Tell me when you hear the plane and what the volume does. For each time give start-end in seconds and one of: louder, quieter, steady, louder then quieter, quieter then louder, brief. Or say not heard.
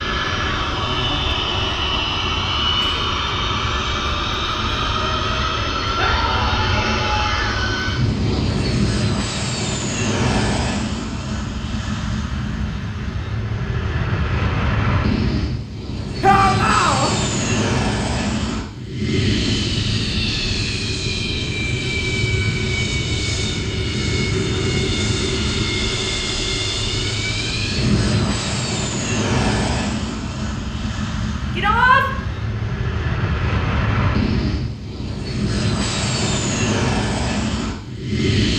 0.0-38.5 steady.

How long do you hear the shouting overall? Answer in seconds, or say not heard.
3 s.